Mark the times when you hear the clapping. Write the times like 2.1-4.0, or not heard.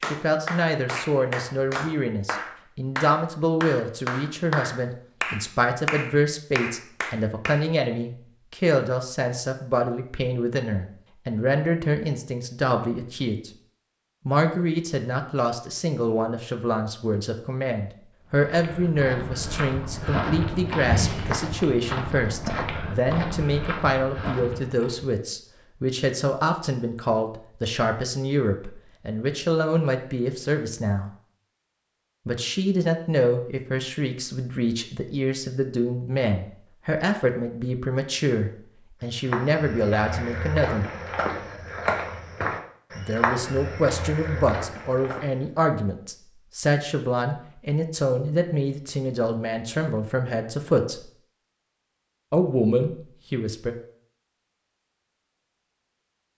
0.0-7.7.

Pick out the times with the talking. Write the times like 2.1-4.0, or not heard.
0.1-13.5, 14.2-31.1, 32.2-40.9, 43.0-51.1, 52.3-53.8.